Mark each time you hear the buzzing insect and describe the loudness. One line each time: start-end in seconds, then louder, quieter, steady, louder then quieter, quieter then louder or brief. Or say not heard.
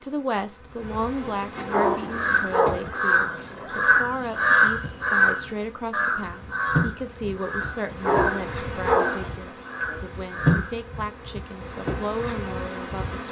0.0-13.2 quieter then louder.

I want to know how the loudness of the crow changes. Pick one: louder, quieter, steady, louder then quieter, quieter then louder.
quieter.